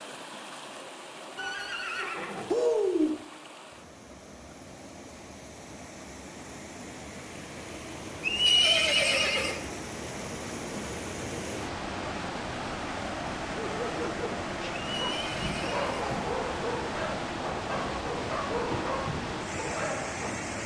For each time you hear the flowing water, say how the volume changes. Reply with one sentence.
You can hear the flowing water from 0.0 to 20.6 s, getting louder.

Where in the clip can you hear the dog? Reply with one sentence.
You can hear the dog from 13.7 to 20.4 s.